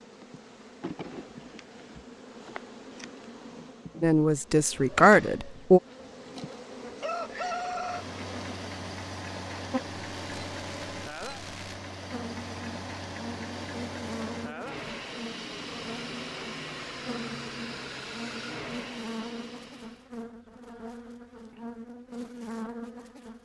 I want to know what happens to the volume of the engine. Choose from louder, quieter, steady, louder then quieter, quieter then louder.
steady.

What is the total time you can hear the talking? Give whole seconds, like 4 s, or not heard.
2 s.